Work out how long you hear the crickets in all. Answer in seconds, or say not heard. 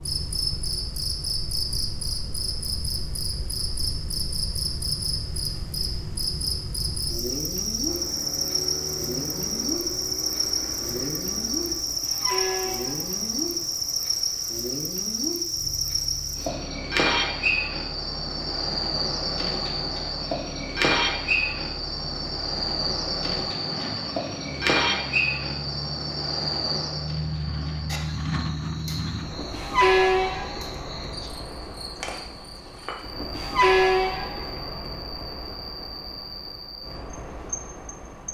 38 s.